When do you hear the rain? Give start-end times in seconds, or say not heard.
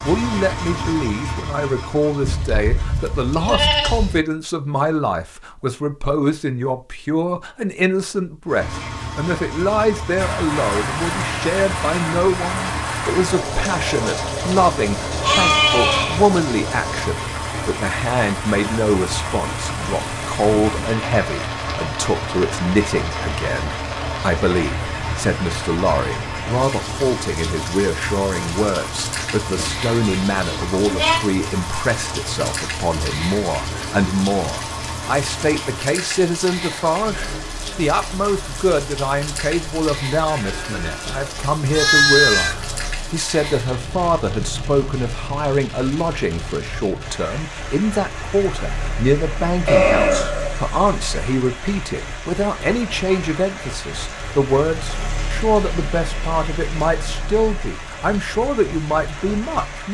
10.2-59.8.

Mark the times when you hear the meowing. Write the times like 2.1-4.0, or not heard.
not heard.